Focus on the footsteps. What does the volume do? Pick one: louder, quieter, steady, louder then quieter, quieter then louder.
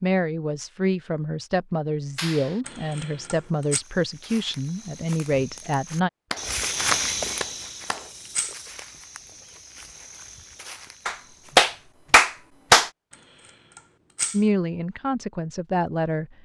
louder then quieter.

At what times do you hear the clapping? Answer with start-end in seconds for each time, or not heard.
2.1-2.6, 6.3-8.1, 11.1-12.9.